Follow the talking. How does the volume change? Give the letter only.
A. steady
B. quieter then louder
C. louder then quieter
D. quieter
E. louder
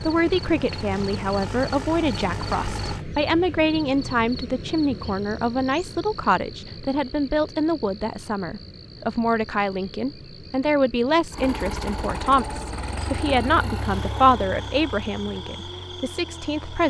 A.